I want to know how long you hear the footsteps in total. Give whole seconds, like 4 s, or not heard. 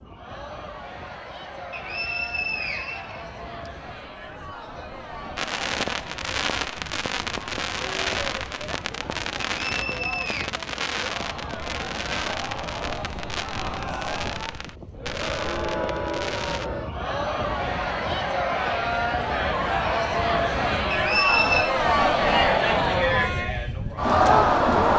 not heard.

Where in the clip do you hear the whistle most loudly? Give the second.
21 s.